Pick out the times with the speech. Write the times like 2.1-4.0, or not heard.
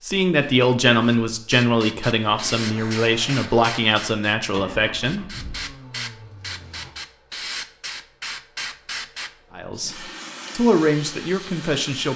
0.0-5.3, 9.6-12.1.